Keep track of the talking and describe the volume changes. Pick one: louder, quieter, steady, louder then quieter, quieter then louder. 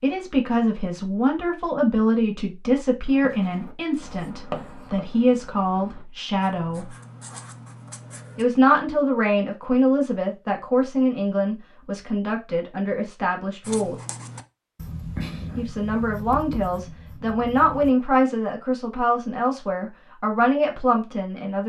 steady.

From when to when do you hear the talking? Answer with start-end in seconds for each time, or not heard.
0.0-6.9, 8.3-13.9, 15.6-21.6.